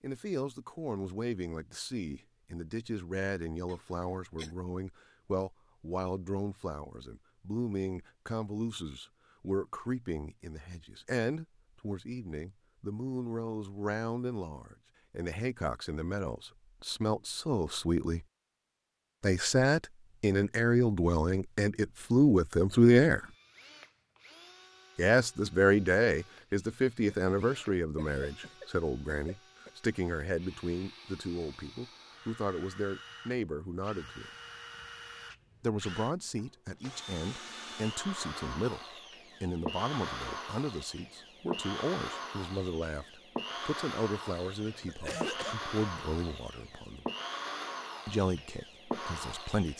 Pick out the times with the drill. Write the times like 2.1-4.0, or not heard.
23.1-49.7.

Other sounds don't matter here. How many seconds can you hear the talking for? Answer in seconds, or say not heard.
45 s.